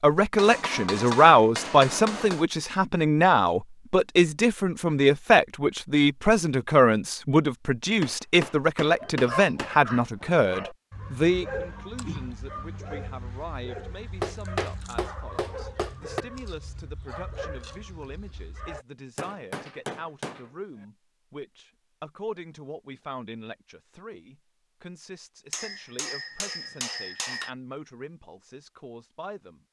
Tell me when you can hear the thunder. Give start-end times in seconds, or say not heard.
not heard.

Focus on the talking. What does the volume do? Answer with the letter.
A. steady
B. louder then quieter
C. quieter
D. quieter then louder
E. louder
C.